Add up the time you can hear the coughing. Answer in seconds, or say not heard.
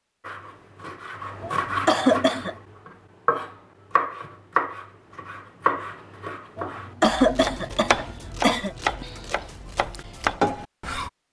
3 s.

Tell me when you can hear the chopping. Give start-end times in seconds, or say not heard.
0.2-11.1.